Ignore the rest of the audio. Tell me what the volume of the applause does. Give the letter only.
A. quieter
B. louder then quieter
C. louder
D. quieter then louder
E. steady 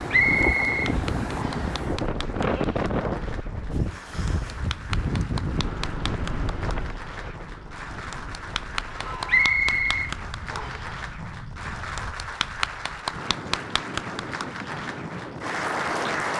C.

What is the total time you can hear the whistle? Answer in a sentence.
The whistle can be heard for 3 seconds in total.